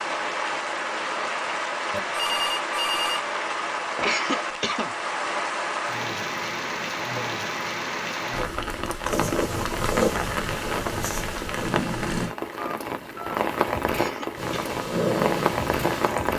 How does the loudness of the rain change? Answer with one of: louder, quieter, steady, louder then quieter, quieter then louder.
steady.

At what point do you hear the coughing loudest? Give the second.
4 s.